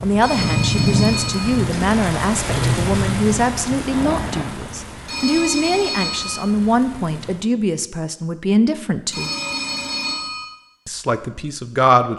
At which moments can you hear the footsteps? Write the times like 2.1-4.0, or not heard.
not heard.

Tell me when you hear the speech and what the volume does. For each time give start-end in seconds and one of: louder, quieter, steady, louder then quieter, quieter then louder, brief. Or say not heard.
0.0-9.3 steady
10.8-12.1 brief.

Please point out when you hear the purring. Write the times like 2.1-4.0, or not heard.
0.0-4.5.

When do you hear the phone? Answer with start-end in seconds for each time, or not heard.
0.2-1.6, 5.0-6.4, 9.1-10.4.